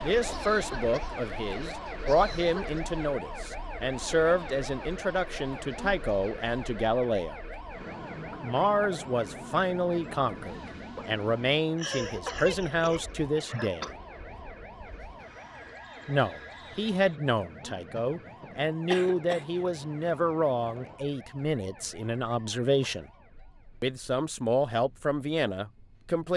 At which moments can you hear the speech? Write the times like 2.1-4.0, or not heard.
0.0-7.3, 8.4-13.9, 16.1-23.1, 23.8-26.3.